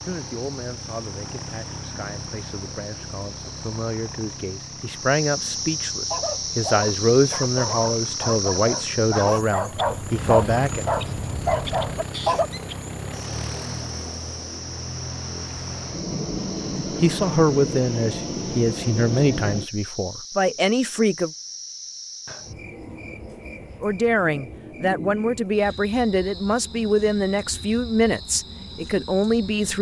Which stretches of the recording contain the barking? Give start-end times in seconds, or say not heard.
6.1-12.5.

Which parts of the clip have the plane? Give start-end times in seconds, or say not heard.
0.0-19.7.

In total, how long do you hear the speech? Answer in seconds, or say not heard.
21 s.